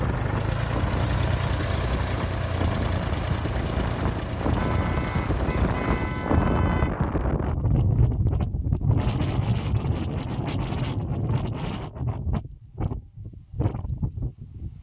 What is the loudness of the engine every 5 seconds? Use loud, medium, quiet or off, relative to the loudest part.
loud, medium, off.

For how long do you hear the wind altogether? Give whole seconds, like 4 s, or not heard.
15 s.